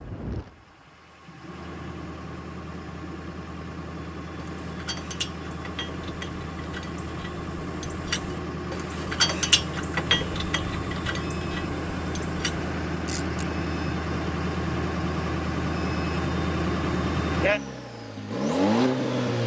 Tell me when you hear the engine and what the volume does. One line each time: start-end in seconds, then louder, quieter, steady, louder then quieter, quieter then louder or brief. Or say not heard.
0.0-19.4 louder.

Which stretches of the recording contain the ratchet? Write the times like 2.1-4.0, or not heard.
4.3-13.4.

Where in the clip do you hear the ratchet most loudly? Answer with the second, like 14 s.
9 s.